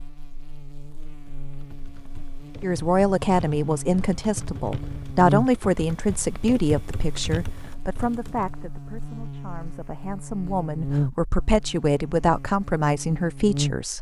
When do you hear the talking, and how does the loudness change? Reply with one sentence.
The talking can be heard from 2.6 to 13.9 s, getting quieter then louder.